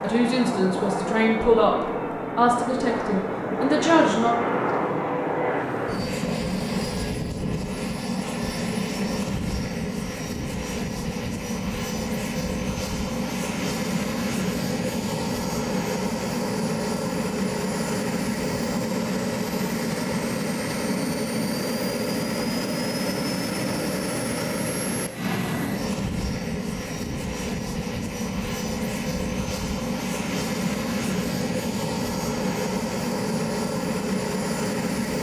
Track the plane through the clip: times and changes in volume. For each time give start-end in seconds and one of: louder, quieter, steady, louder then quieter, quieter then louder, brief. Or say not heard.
0.0-35.1 steady.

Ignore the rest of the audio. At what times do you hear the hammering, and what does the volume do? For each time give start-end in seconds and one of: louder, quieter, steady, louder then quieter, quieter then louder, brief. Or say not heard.
not heard.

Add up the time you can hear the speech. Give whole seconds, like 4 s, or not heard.
4 s.